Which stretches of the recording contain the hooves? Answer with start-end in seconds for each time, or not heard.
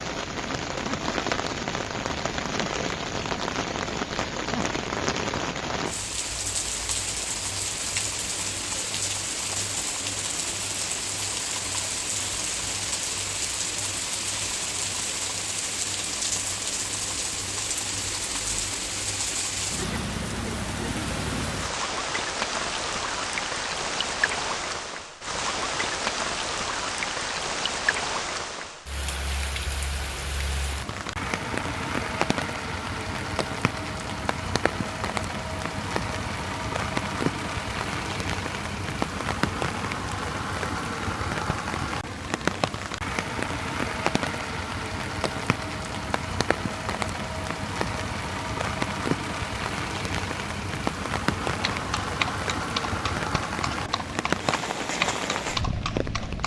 51.5-56.4.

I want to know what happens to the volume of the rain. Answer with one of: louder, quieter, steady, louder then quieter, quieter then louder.
steady.